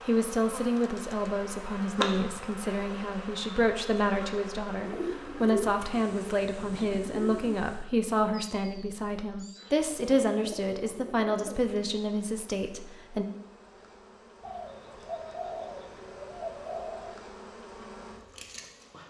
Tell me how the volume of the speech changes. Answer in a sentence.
The volume of the speech stays about the same.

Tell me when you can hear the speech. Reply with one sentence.
The speech can be heard from 0.1 to 13.2 s.